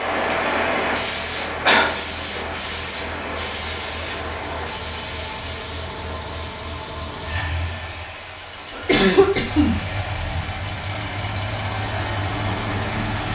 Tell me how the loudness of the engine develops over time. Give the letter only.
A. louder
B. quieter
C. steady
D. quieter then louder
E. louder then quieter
A.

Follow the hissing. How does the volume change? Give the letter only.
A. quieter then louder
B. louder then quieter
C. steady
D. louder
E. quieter
E.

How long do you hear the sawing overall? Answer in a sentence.
You can't hear the sawing here.